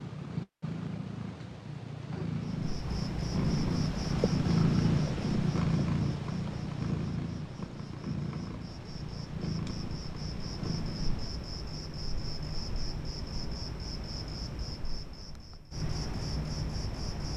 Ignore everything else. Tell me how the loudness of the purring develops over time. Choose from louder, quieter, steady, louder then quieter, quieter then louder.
louder then quieter.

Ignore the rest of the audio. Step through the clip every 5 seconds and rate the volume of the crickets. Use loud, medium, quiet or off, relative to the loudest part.
loud, medium, loud, loud.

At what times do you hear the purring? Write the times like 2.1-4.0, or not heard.
0.0-11.3.